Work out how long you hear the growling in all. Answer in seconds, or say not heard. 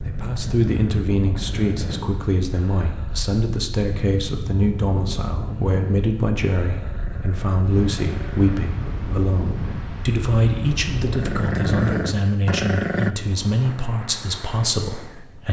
6 s.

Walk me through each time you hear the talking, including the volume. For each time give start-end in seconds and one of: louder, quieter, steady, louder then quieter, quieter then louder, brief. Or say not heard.
0.0-15.4 steady.